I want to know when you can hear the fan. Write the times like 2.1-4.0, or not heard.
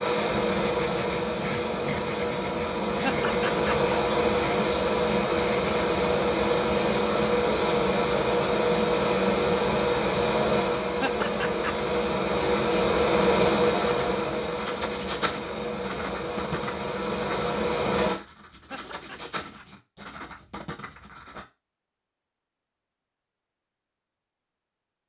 0.0-18.2.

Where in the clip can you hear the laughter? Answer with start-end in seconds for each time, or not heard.
3.0-3.9, 11.0-11.8, 18.7-19.6.